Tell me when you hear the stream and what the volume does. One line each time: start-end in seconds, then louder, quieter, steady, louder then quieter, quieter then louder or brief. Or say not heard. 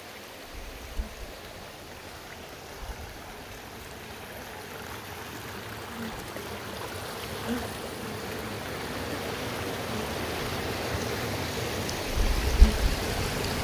0.0-13.5 louder.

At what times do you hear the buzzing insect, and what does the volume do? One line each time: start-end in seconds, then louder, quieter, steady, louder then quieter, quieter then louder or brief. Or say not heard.
0.0-13.5 louder.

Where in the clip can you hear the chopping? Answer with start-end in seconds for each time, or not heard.
not heard.